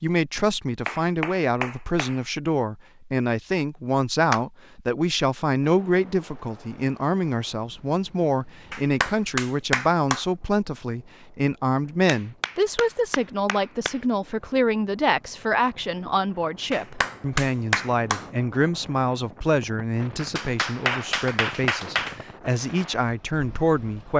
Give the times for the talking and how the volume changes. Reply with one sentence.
The talking can be heard from 0.0 to 24.1 s, at a steady volume.